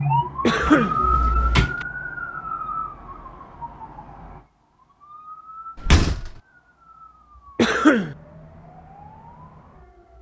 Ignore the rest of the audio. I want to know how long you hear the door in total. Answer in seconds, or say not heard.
2 s.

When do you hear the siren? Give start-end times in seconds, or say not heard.
0.0-10.1.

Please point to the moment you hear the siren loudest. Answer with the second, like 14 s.
1 s.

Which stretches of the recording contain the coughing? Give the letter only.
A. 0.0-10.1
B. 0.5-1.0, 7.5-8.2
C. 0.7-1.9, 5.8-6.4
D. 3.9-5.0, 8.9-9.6
B.